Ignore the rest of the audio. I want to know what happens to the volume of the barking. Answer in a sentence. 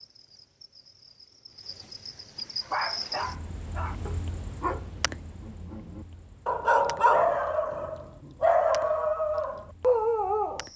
The loudness of the barking goes up.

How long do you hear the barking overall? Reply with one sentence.
You can hear the barking for 8 seconds altogether.